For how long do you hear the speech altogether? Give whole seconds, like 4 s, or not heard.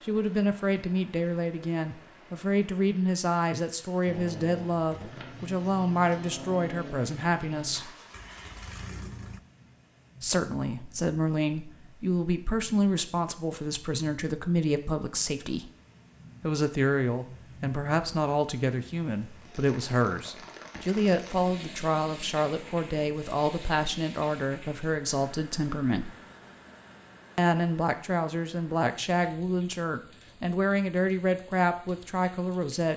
29 s.